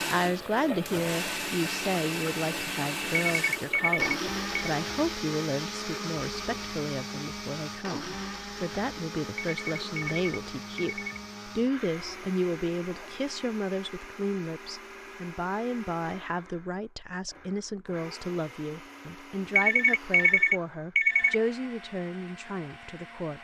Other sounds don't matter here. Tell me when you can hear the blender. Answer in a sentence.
You can hear the blender from 0.0 to 23.3 s.